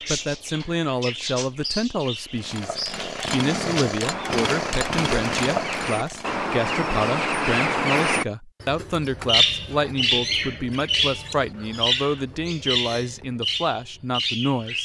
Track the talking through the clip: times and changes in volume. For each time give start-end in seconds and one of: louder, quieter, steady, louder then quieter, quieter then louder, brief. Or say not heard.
0.1-14.8 steady.